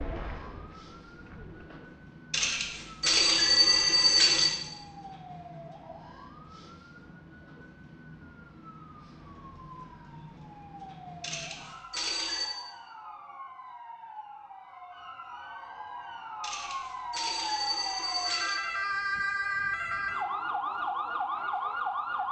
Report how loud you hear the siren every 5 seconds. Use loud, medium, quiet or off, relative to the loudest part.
quiet, quiet, quiet, loud, loud.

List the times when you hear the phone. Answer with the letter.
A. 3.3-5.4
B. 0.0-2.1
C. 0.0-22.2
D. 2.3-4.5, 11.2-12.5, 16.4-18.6
D.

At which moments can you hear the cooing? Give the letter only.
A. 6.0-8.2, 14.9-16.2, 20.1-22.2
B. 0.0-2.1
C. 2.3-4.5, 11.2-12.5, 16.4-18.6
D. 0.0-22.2
B.